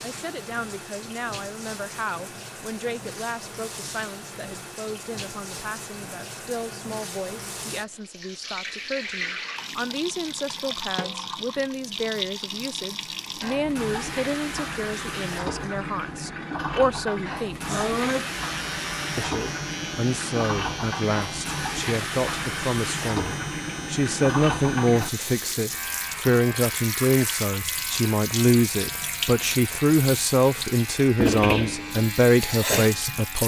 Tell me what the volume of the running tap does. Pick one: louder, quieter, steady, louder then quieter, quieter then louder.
louder.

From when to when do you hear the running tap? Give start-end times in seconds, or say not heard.
0.0-33.4.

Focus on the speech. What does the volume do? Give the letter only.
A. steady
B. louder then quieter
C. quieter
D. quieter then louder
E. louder
E.